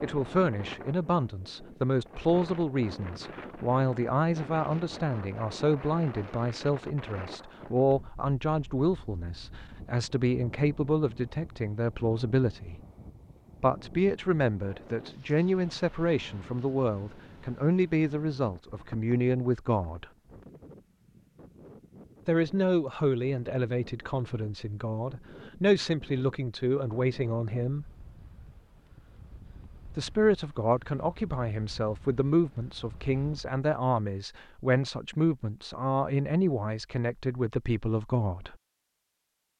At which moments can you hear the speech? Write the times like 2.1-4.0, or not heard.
0.0-12.8, 13.6-20.1, 22.2-27.9, 29.9-38.5.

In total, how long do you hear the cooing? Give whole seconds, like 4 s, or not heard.
not heard.